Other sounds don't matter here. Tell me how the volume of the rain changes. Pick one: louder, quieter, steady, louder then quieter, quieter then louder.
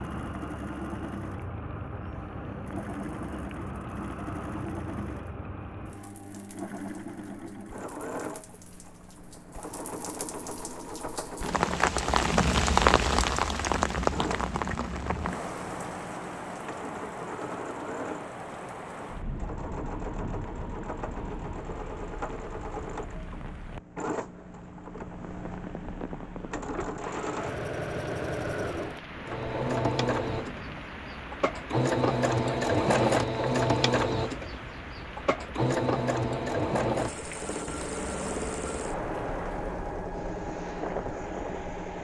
louder then quieter.